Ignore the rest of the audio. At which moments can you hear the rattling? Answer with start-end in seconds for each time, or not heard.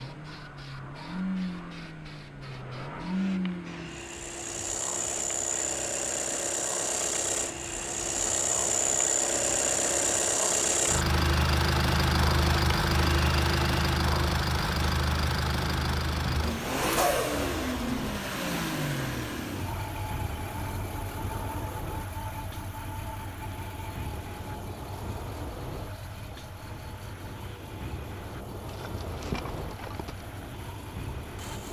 28.6-30.2.